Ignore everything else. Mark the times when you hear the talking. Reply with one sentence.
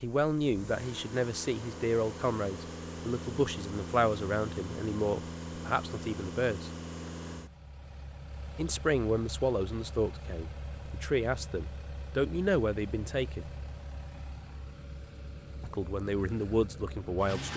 The talking can be heard from 0.0 to 6.7 s, from 8.6 to 13.5 s and from 15.6 to 17.5 s.